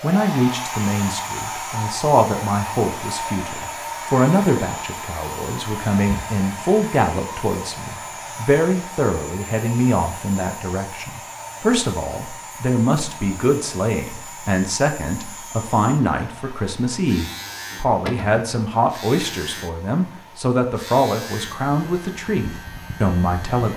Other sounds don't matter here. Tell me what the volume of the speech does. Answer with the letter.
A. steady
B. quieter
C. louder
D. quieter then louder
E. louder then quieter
A.